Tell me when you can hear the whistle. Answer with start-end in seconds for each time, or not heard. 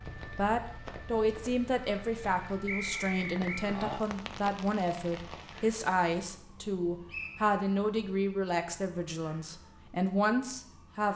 2.6-3.7, 7.1-7.5.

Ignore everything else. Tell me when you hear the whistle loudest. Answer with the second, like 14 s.
3 s.